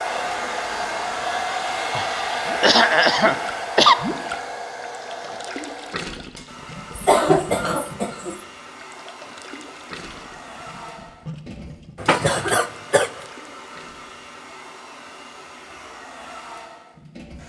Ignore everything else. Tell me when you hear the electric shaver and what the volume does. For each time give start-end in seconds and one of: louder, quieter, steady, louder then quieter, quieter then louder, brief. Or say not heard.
not heard.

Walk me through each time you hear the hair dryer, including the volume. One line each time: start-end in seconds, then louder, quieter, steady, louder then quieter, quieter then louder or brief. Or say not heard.
0.0-17.4 quieter.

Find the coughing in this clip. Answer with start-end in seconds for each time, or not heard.
1.9-4.0, 7.0-8.4, 11.9-13.1.